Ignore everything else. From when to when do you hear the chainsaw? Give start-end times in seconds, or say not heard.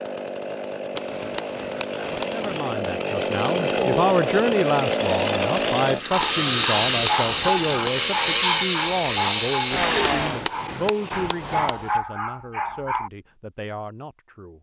0.0-10.4.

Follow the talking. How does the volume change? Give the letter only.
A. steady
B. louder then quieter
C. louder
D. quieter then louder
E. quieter
E.